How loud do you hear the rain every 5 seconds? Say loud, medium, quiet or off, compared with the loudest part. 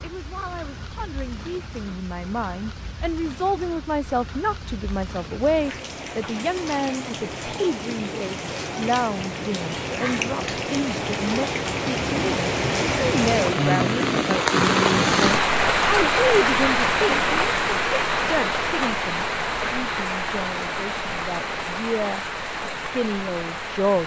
quiet, medium, loud, loud, medium.